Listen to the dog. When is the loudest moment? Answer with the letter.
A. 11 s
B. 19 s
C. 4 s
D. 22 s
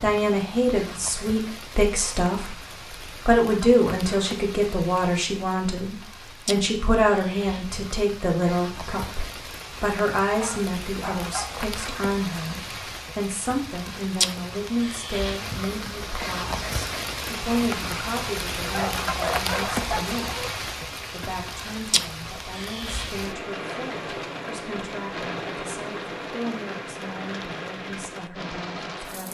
B.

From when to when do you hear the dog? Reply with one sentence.
You can hear the dog from 10.3 to 11.7 s and from 18.6 to 20.6 s.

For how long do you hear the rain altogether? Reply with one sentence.
You can hear the rain for 29 seconds altogether.